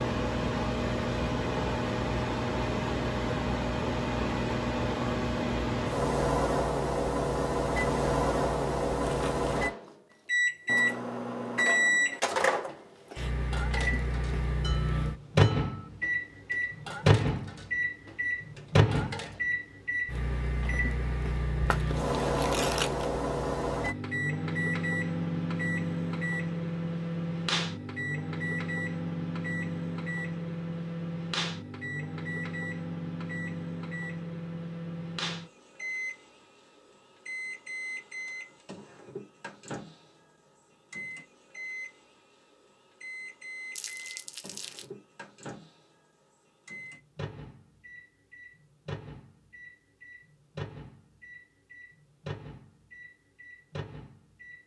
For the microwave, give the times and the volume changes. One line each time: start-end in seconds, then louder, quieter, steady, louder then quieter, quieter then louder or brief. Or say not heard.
0.0-54.6 quieter.